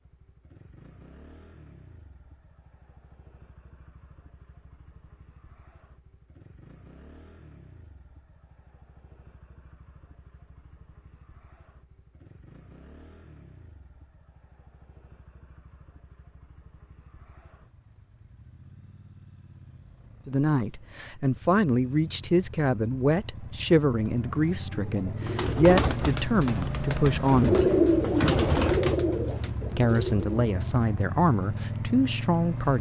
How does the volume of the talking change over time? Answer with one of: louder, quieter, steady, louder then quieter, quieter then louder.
steady.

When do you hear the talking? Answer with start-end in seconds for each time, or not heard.
20.2-27.7, 29.7-32.7.